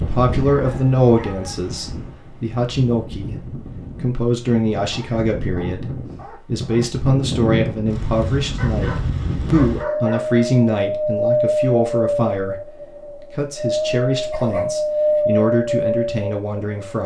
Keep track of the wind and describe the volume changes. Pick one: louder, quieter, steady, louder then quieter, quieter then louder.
louder.